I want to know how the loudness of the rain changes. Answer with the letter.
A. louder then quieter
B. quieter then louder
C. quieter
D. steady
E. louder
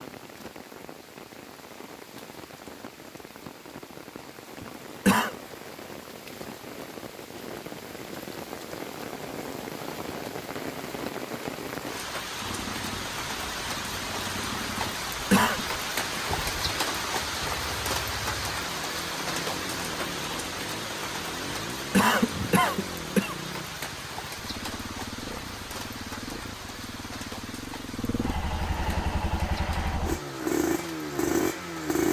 A.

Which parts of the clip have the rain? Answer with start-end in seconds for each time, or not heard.
0.0-32.0.